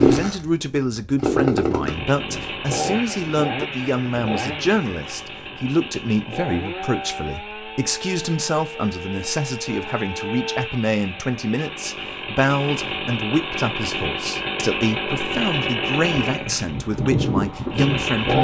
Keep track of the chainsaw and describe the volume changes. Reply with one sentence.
The volume of the chainsaw goes down, then up.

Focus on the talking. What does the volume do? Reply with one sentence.
The volume of the talking stays about the same.